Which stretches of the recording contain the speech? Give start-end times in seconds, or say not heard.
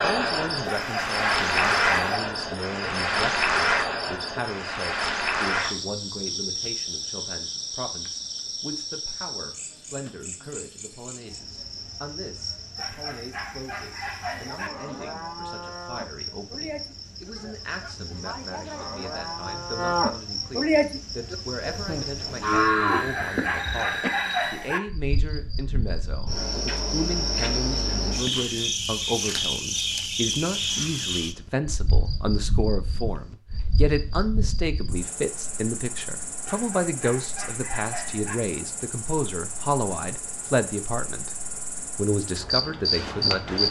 0.0-41.3, 42.0-43.6.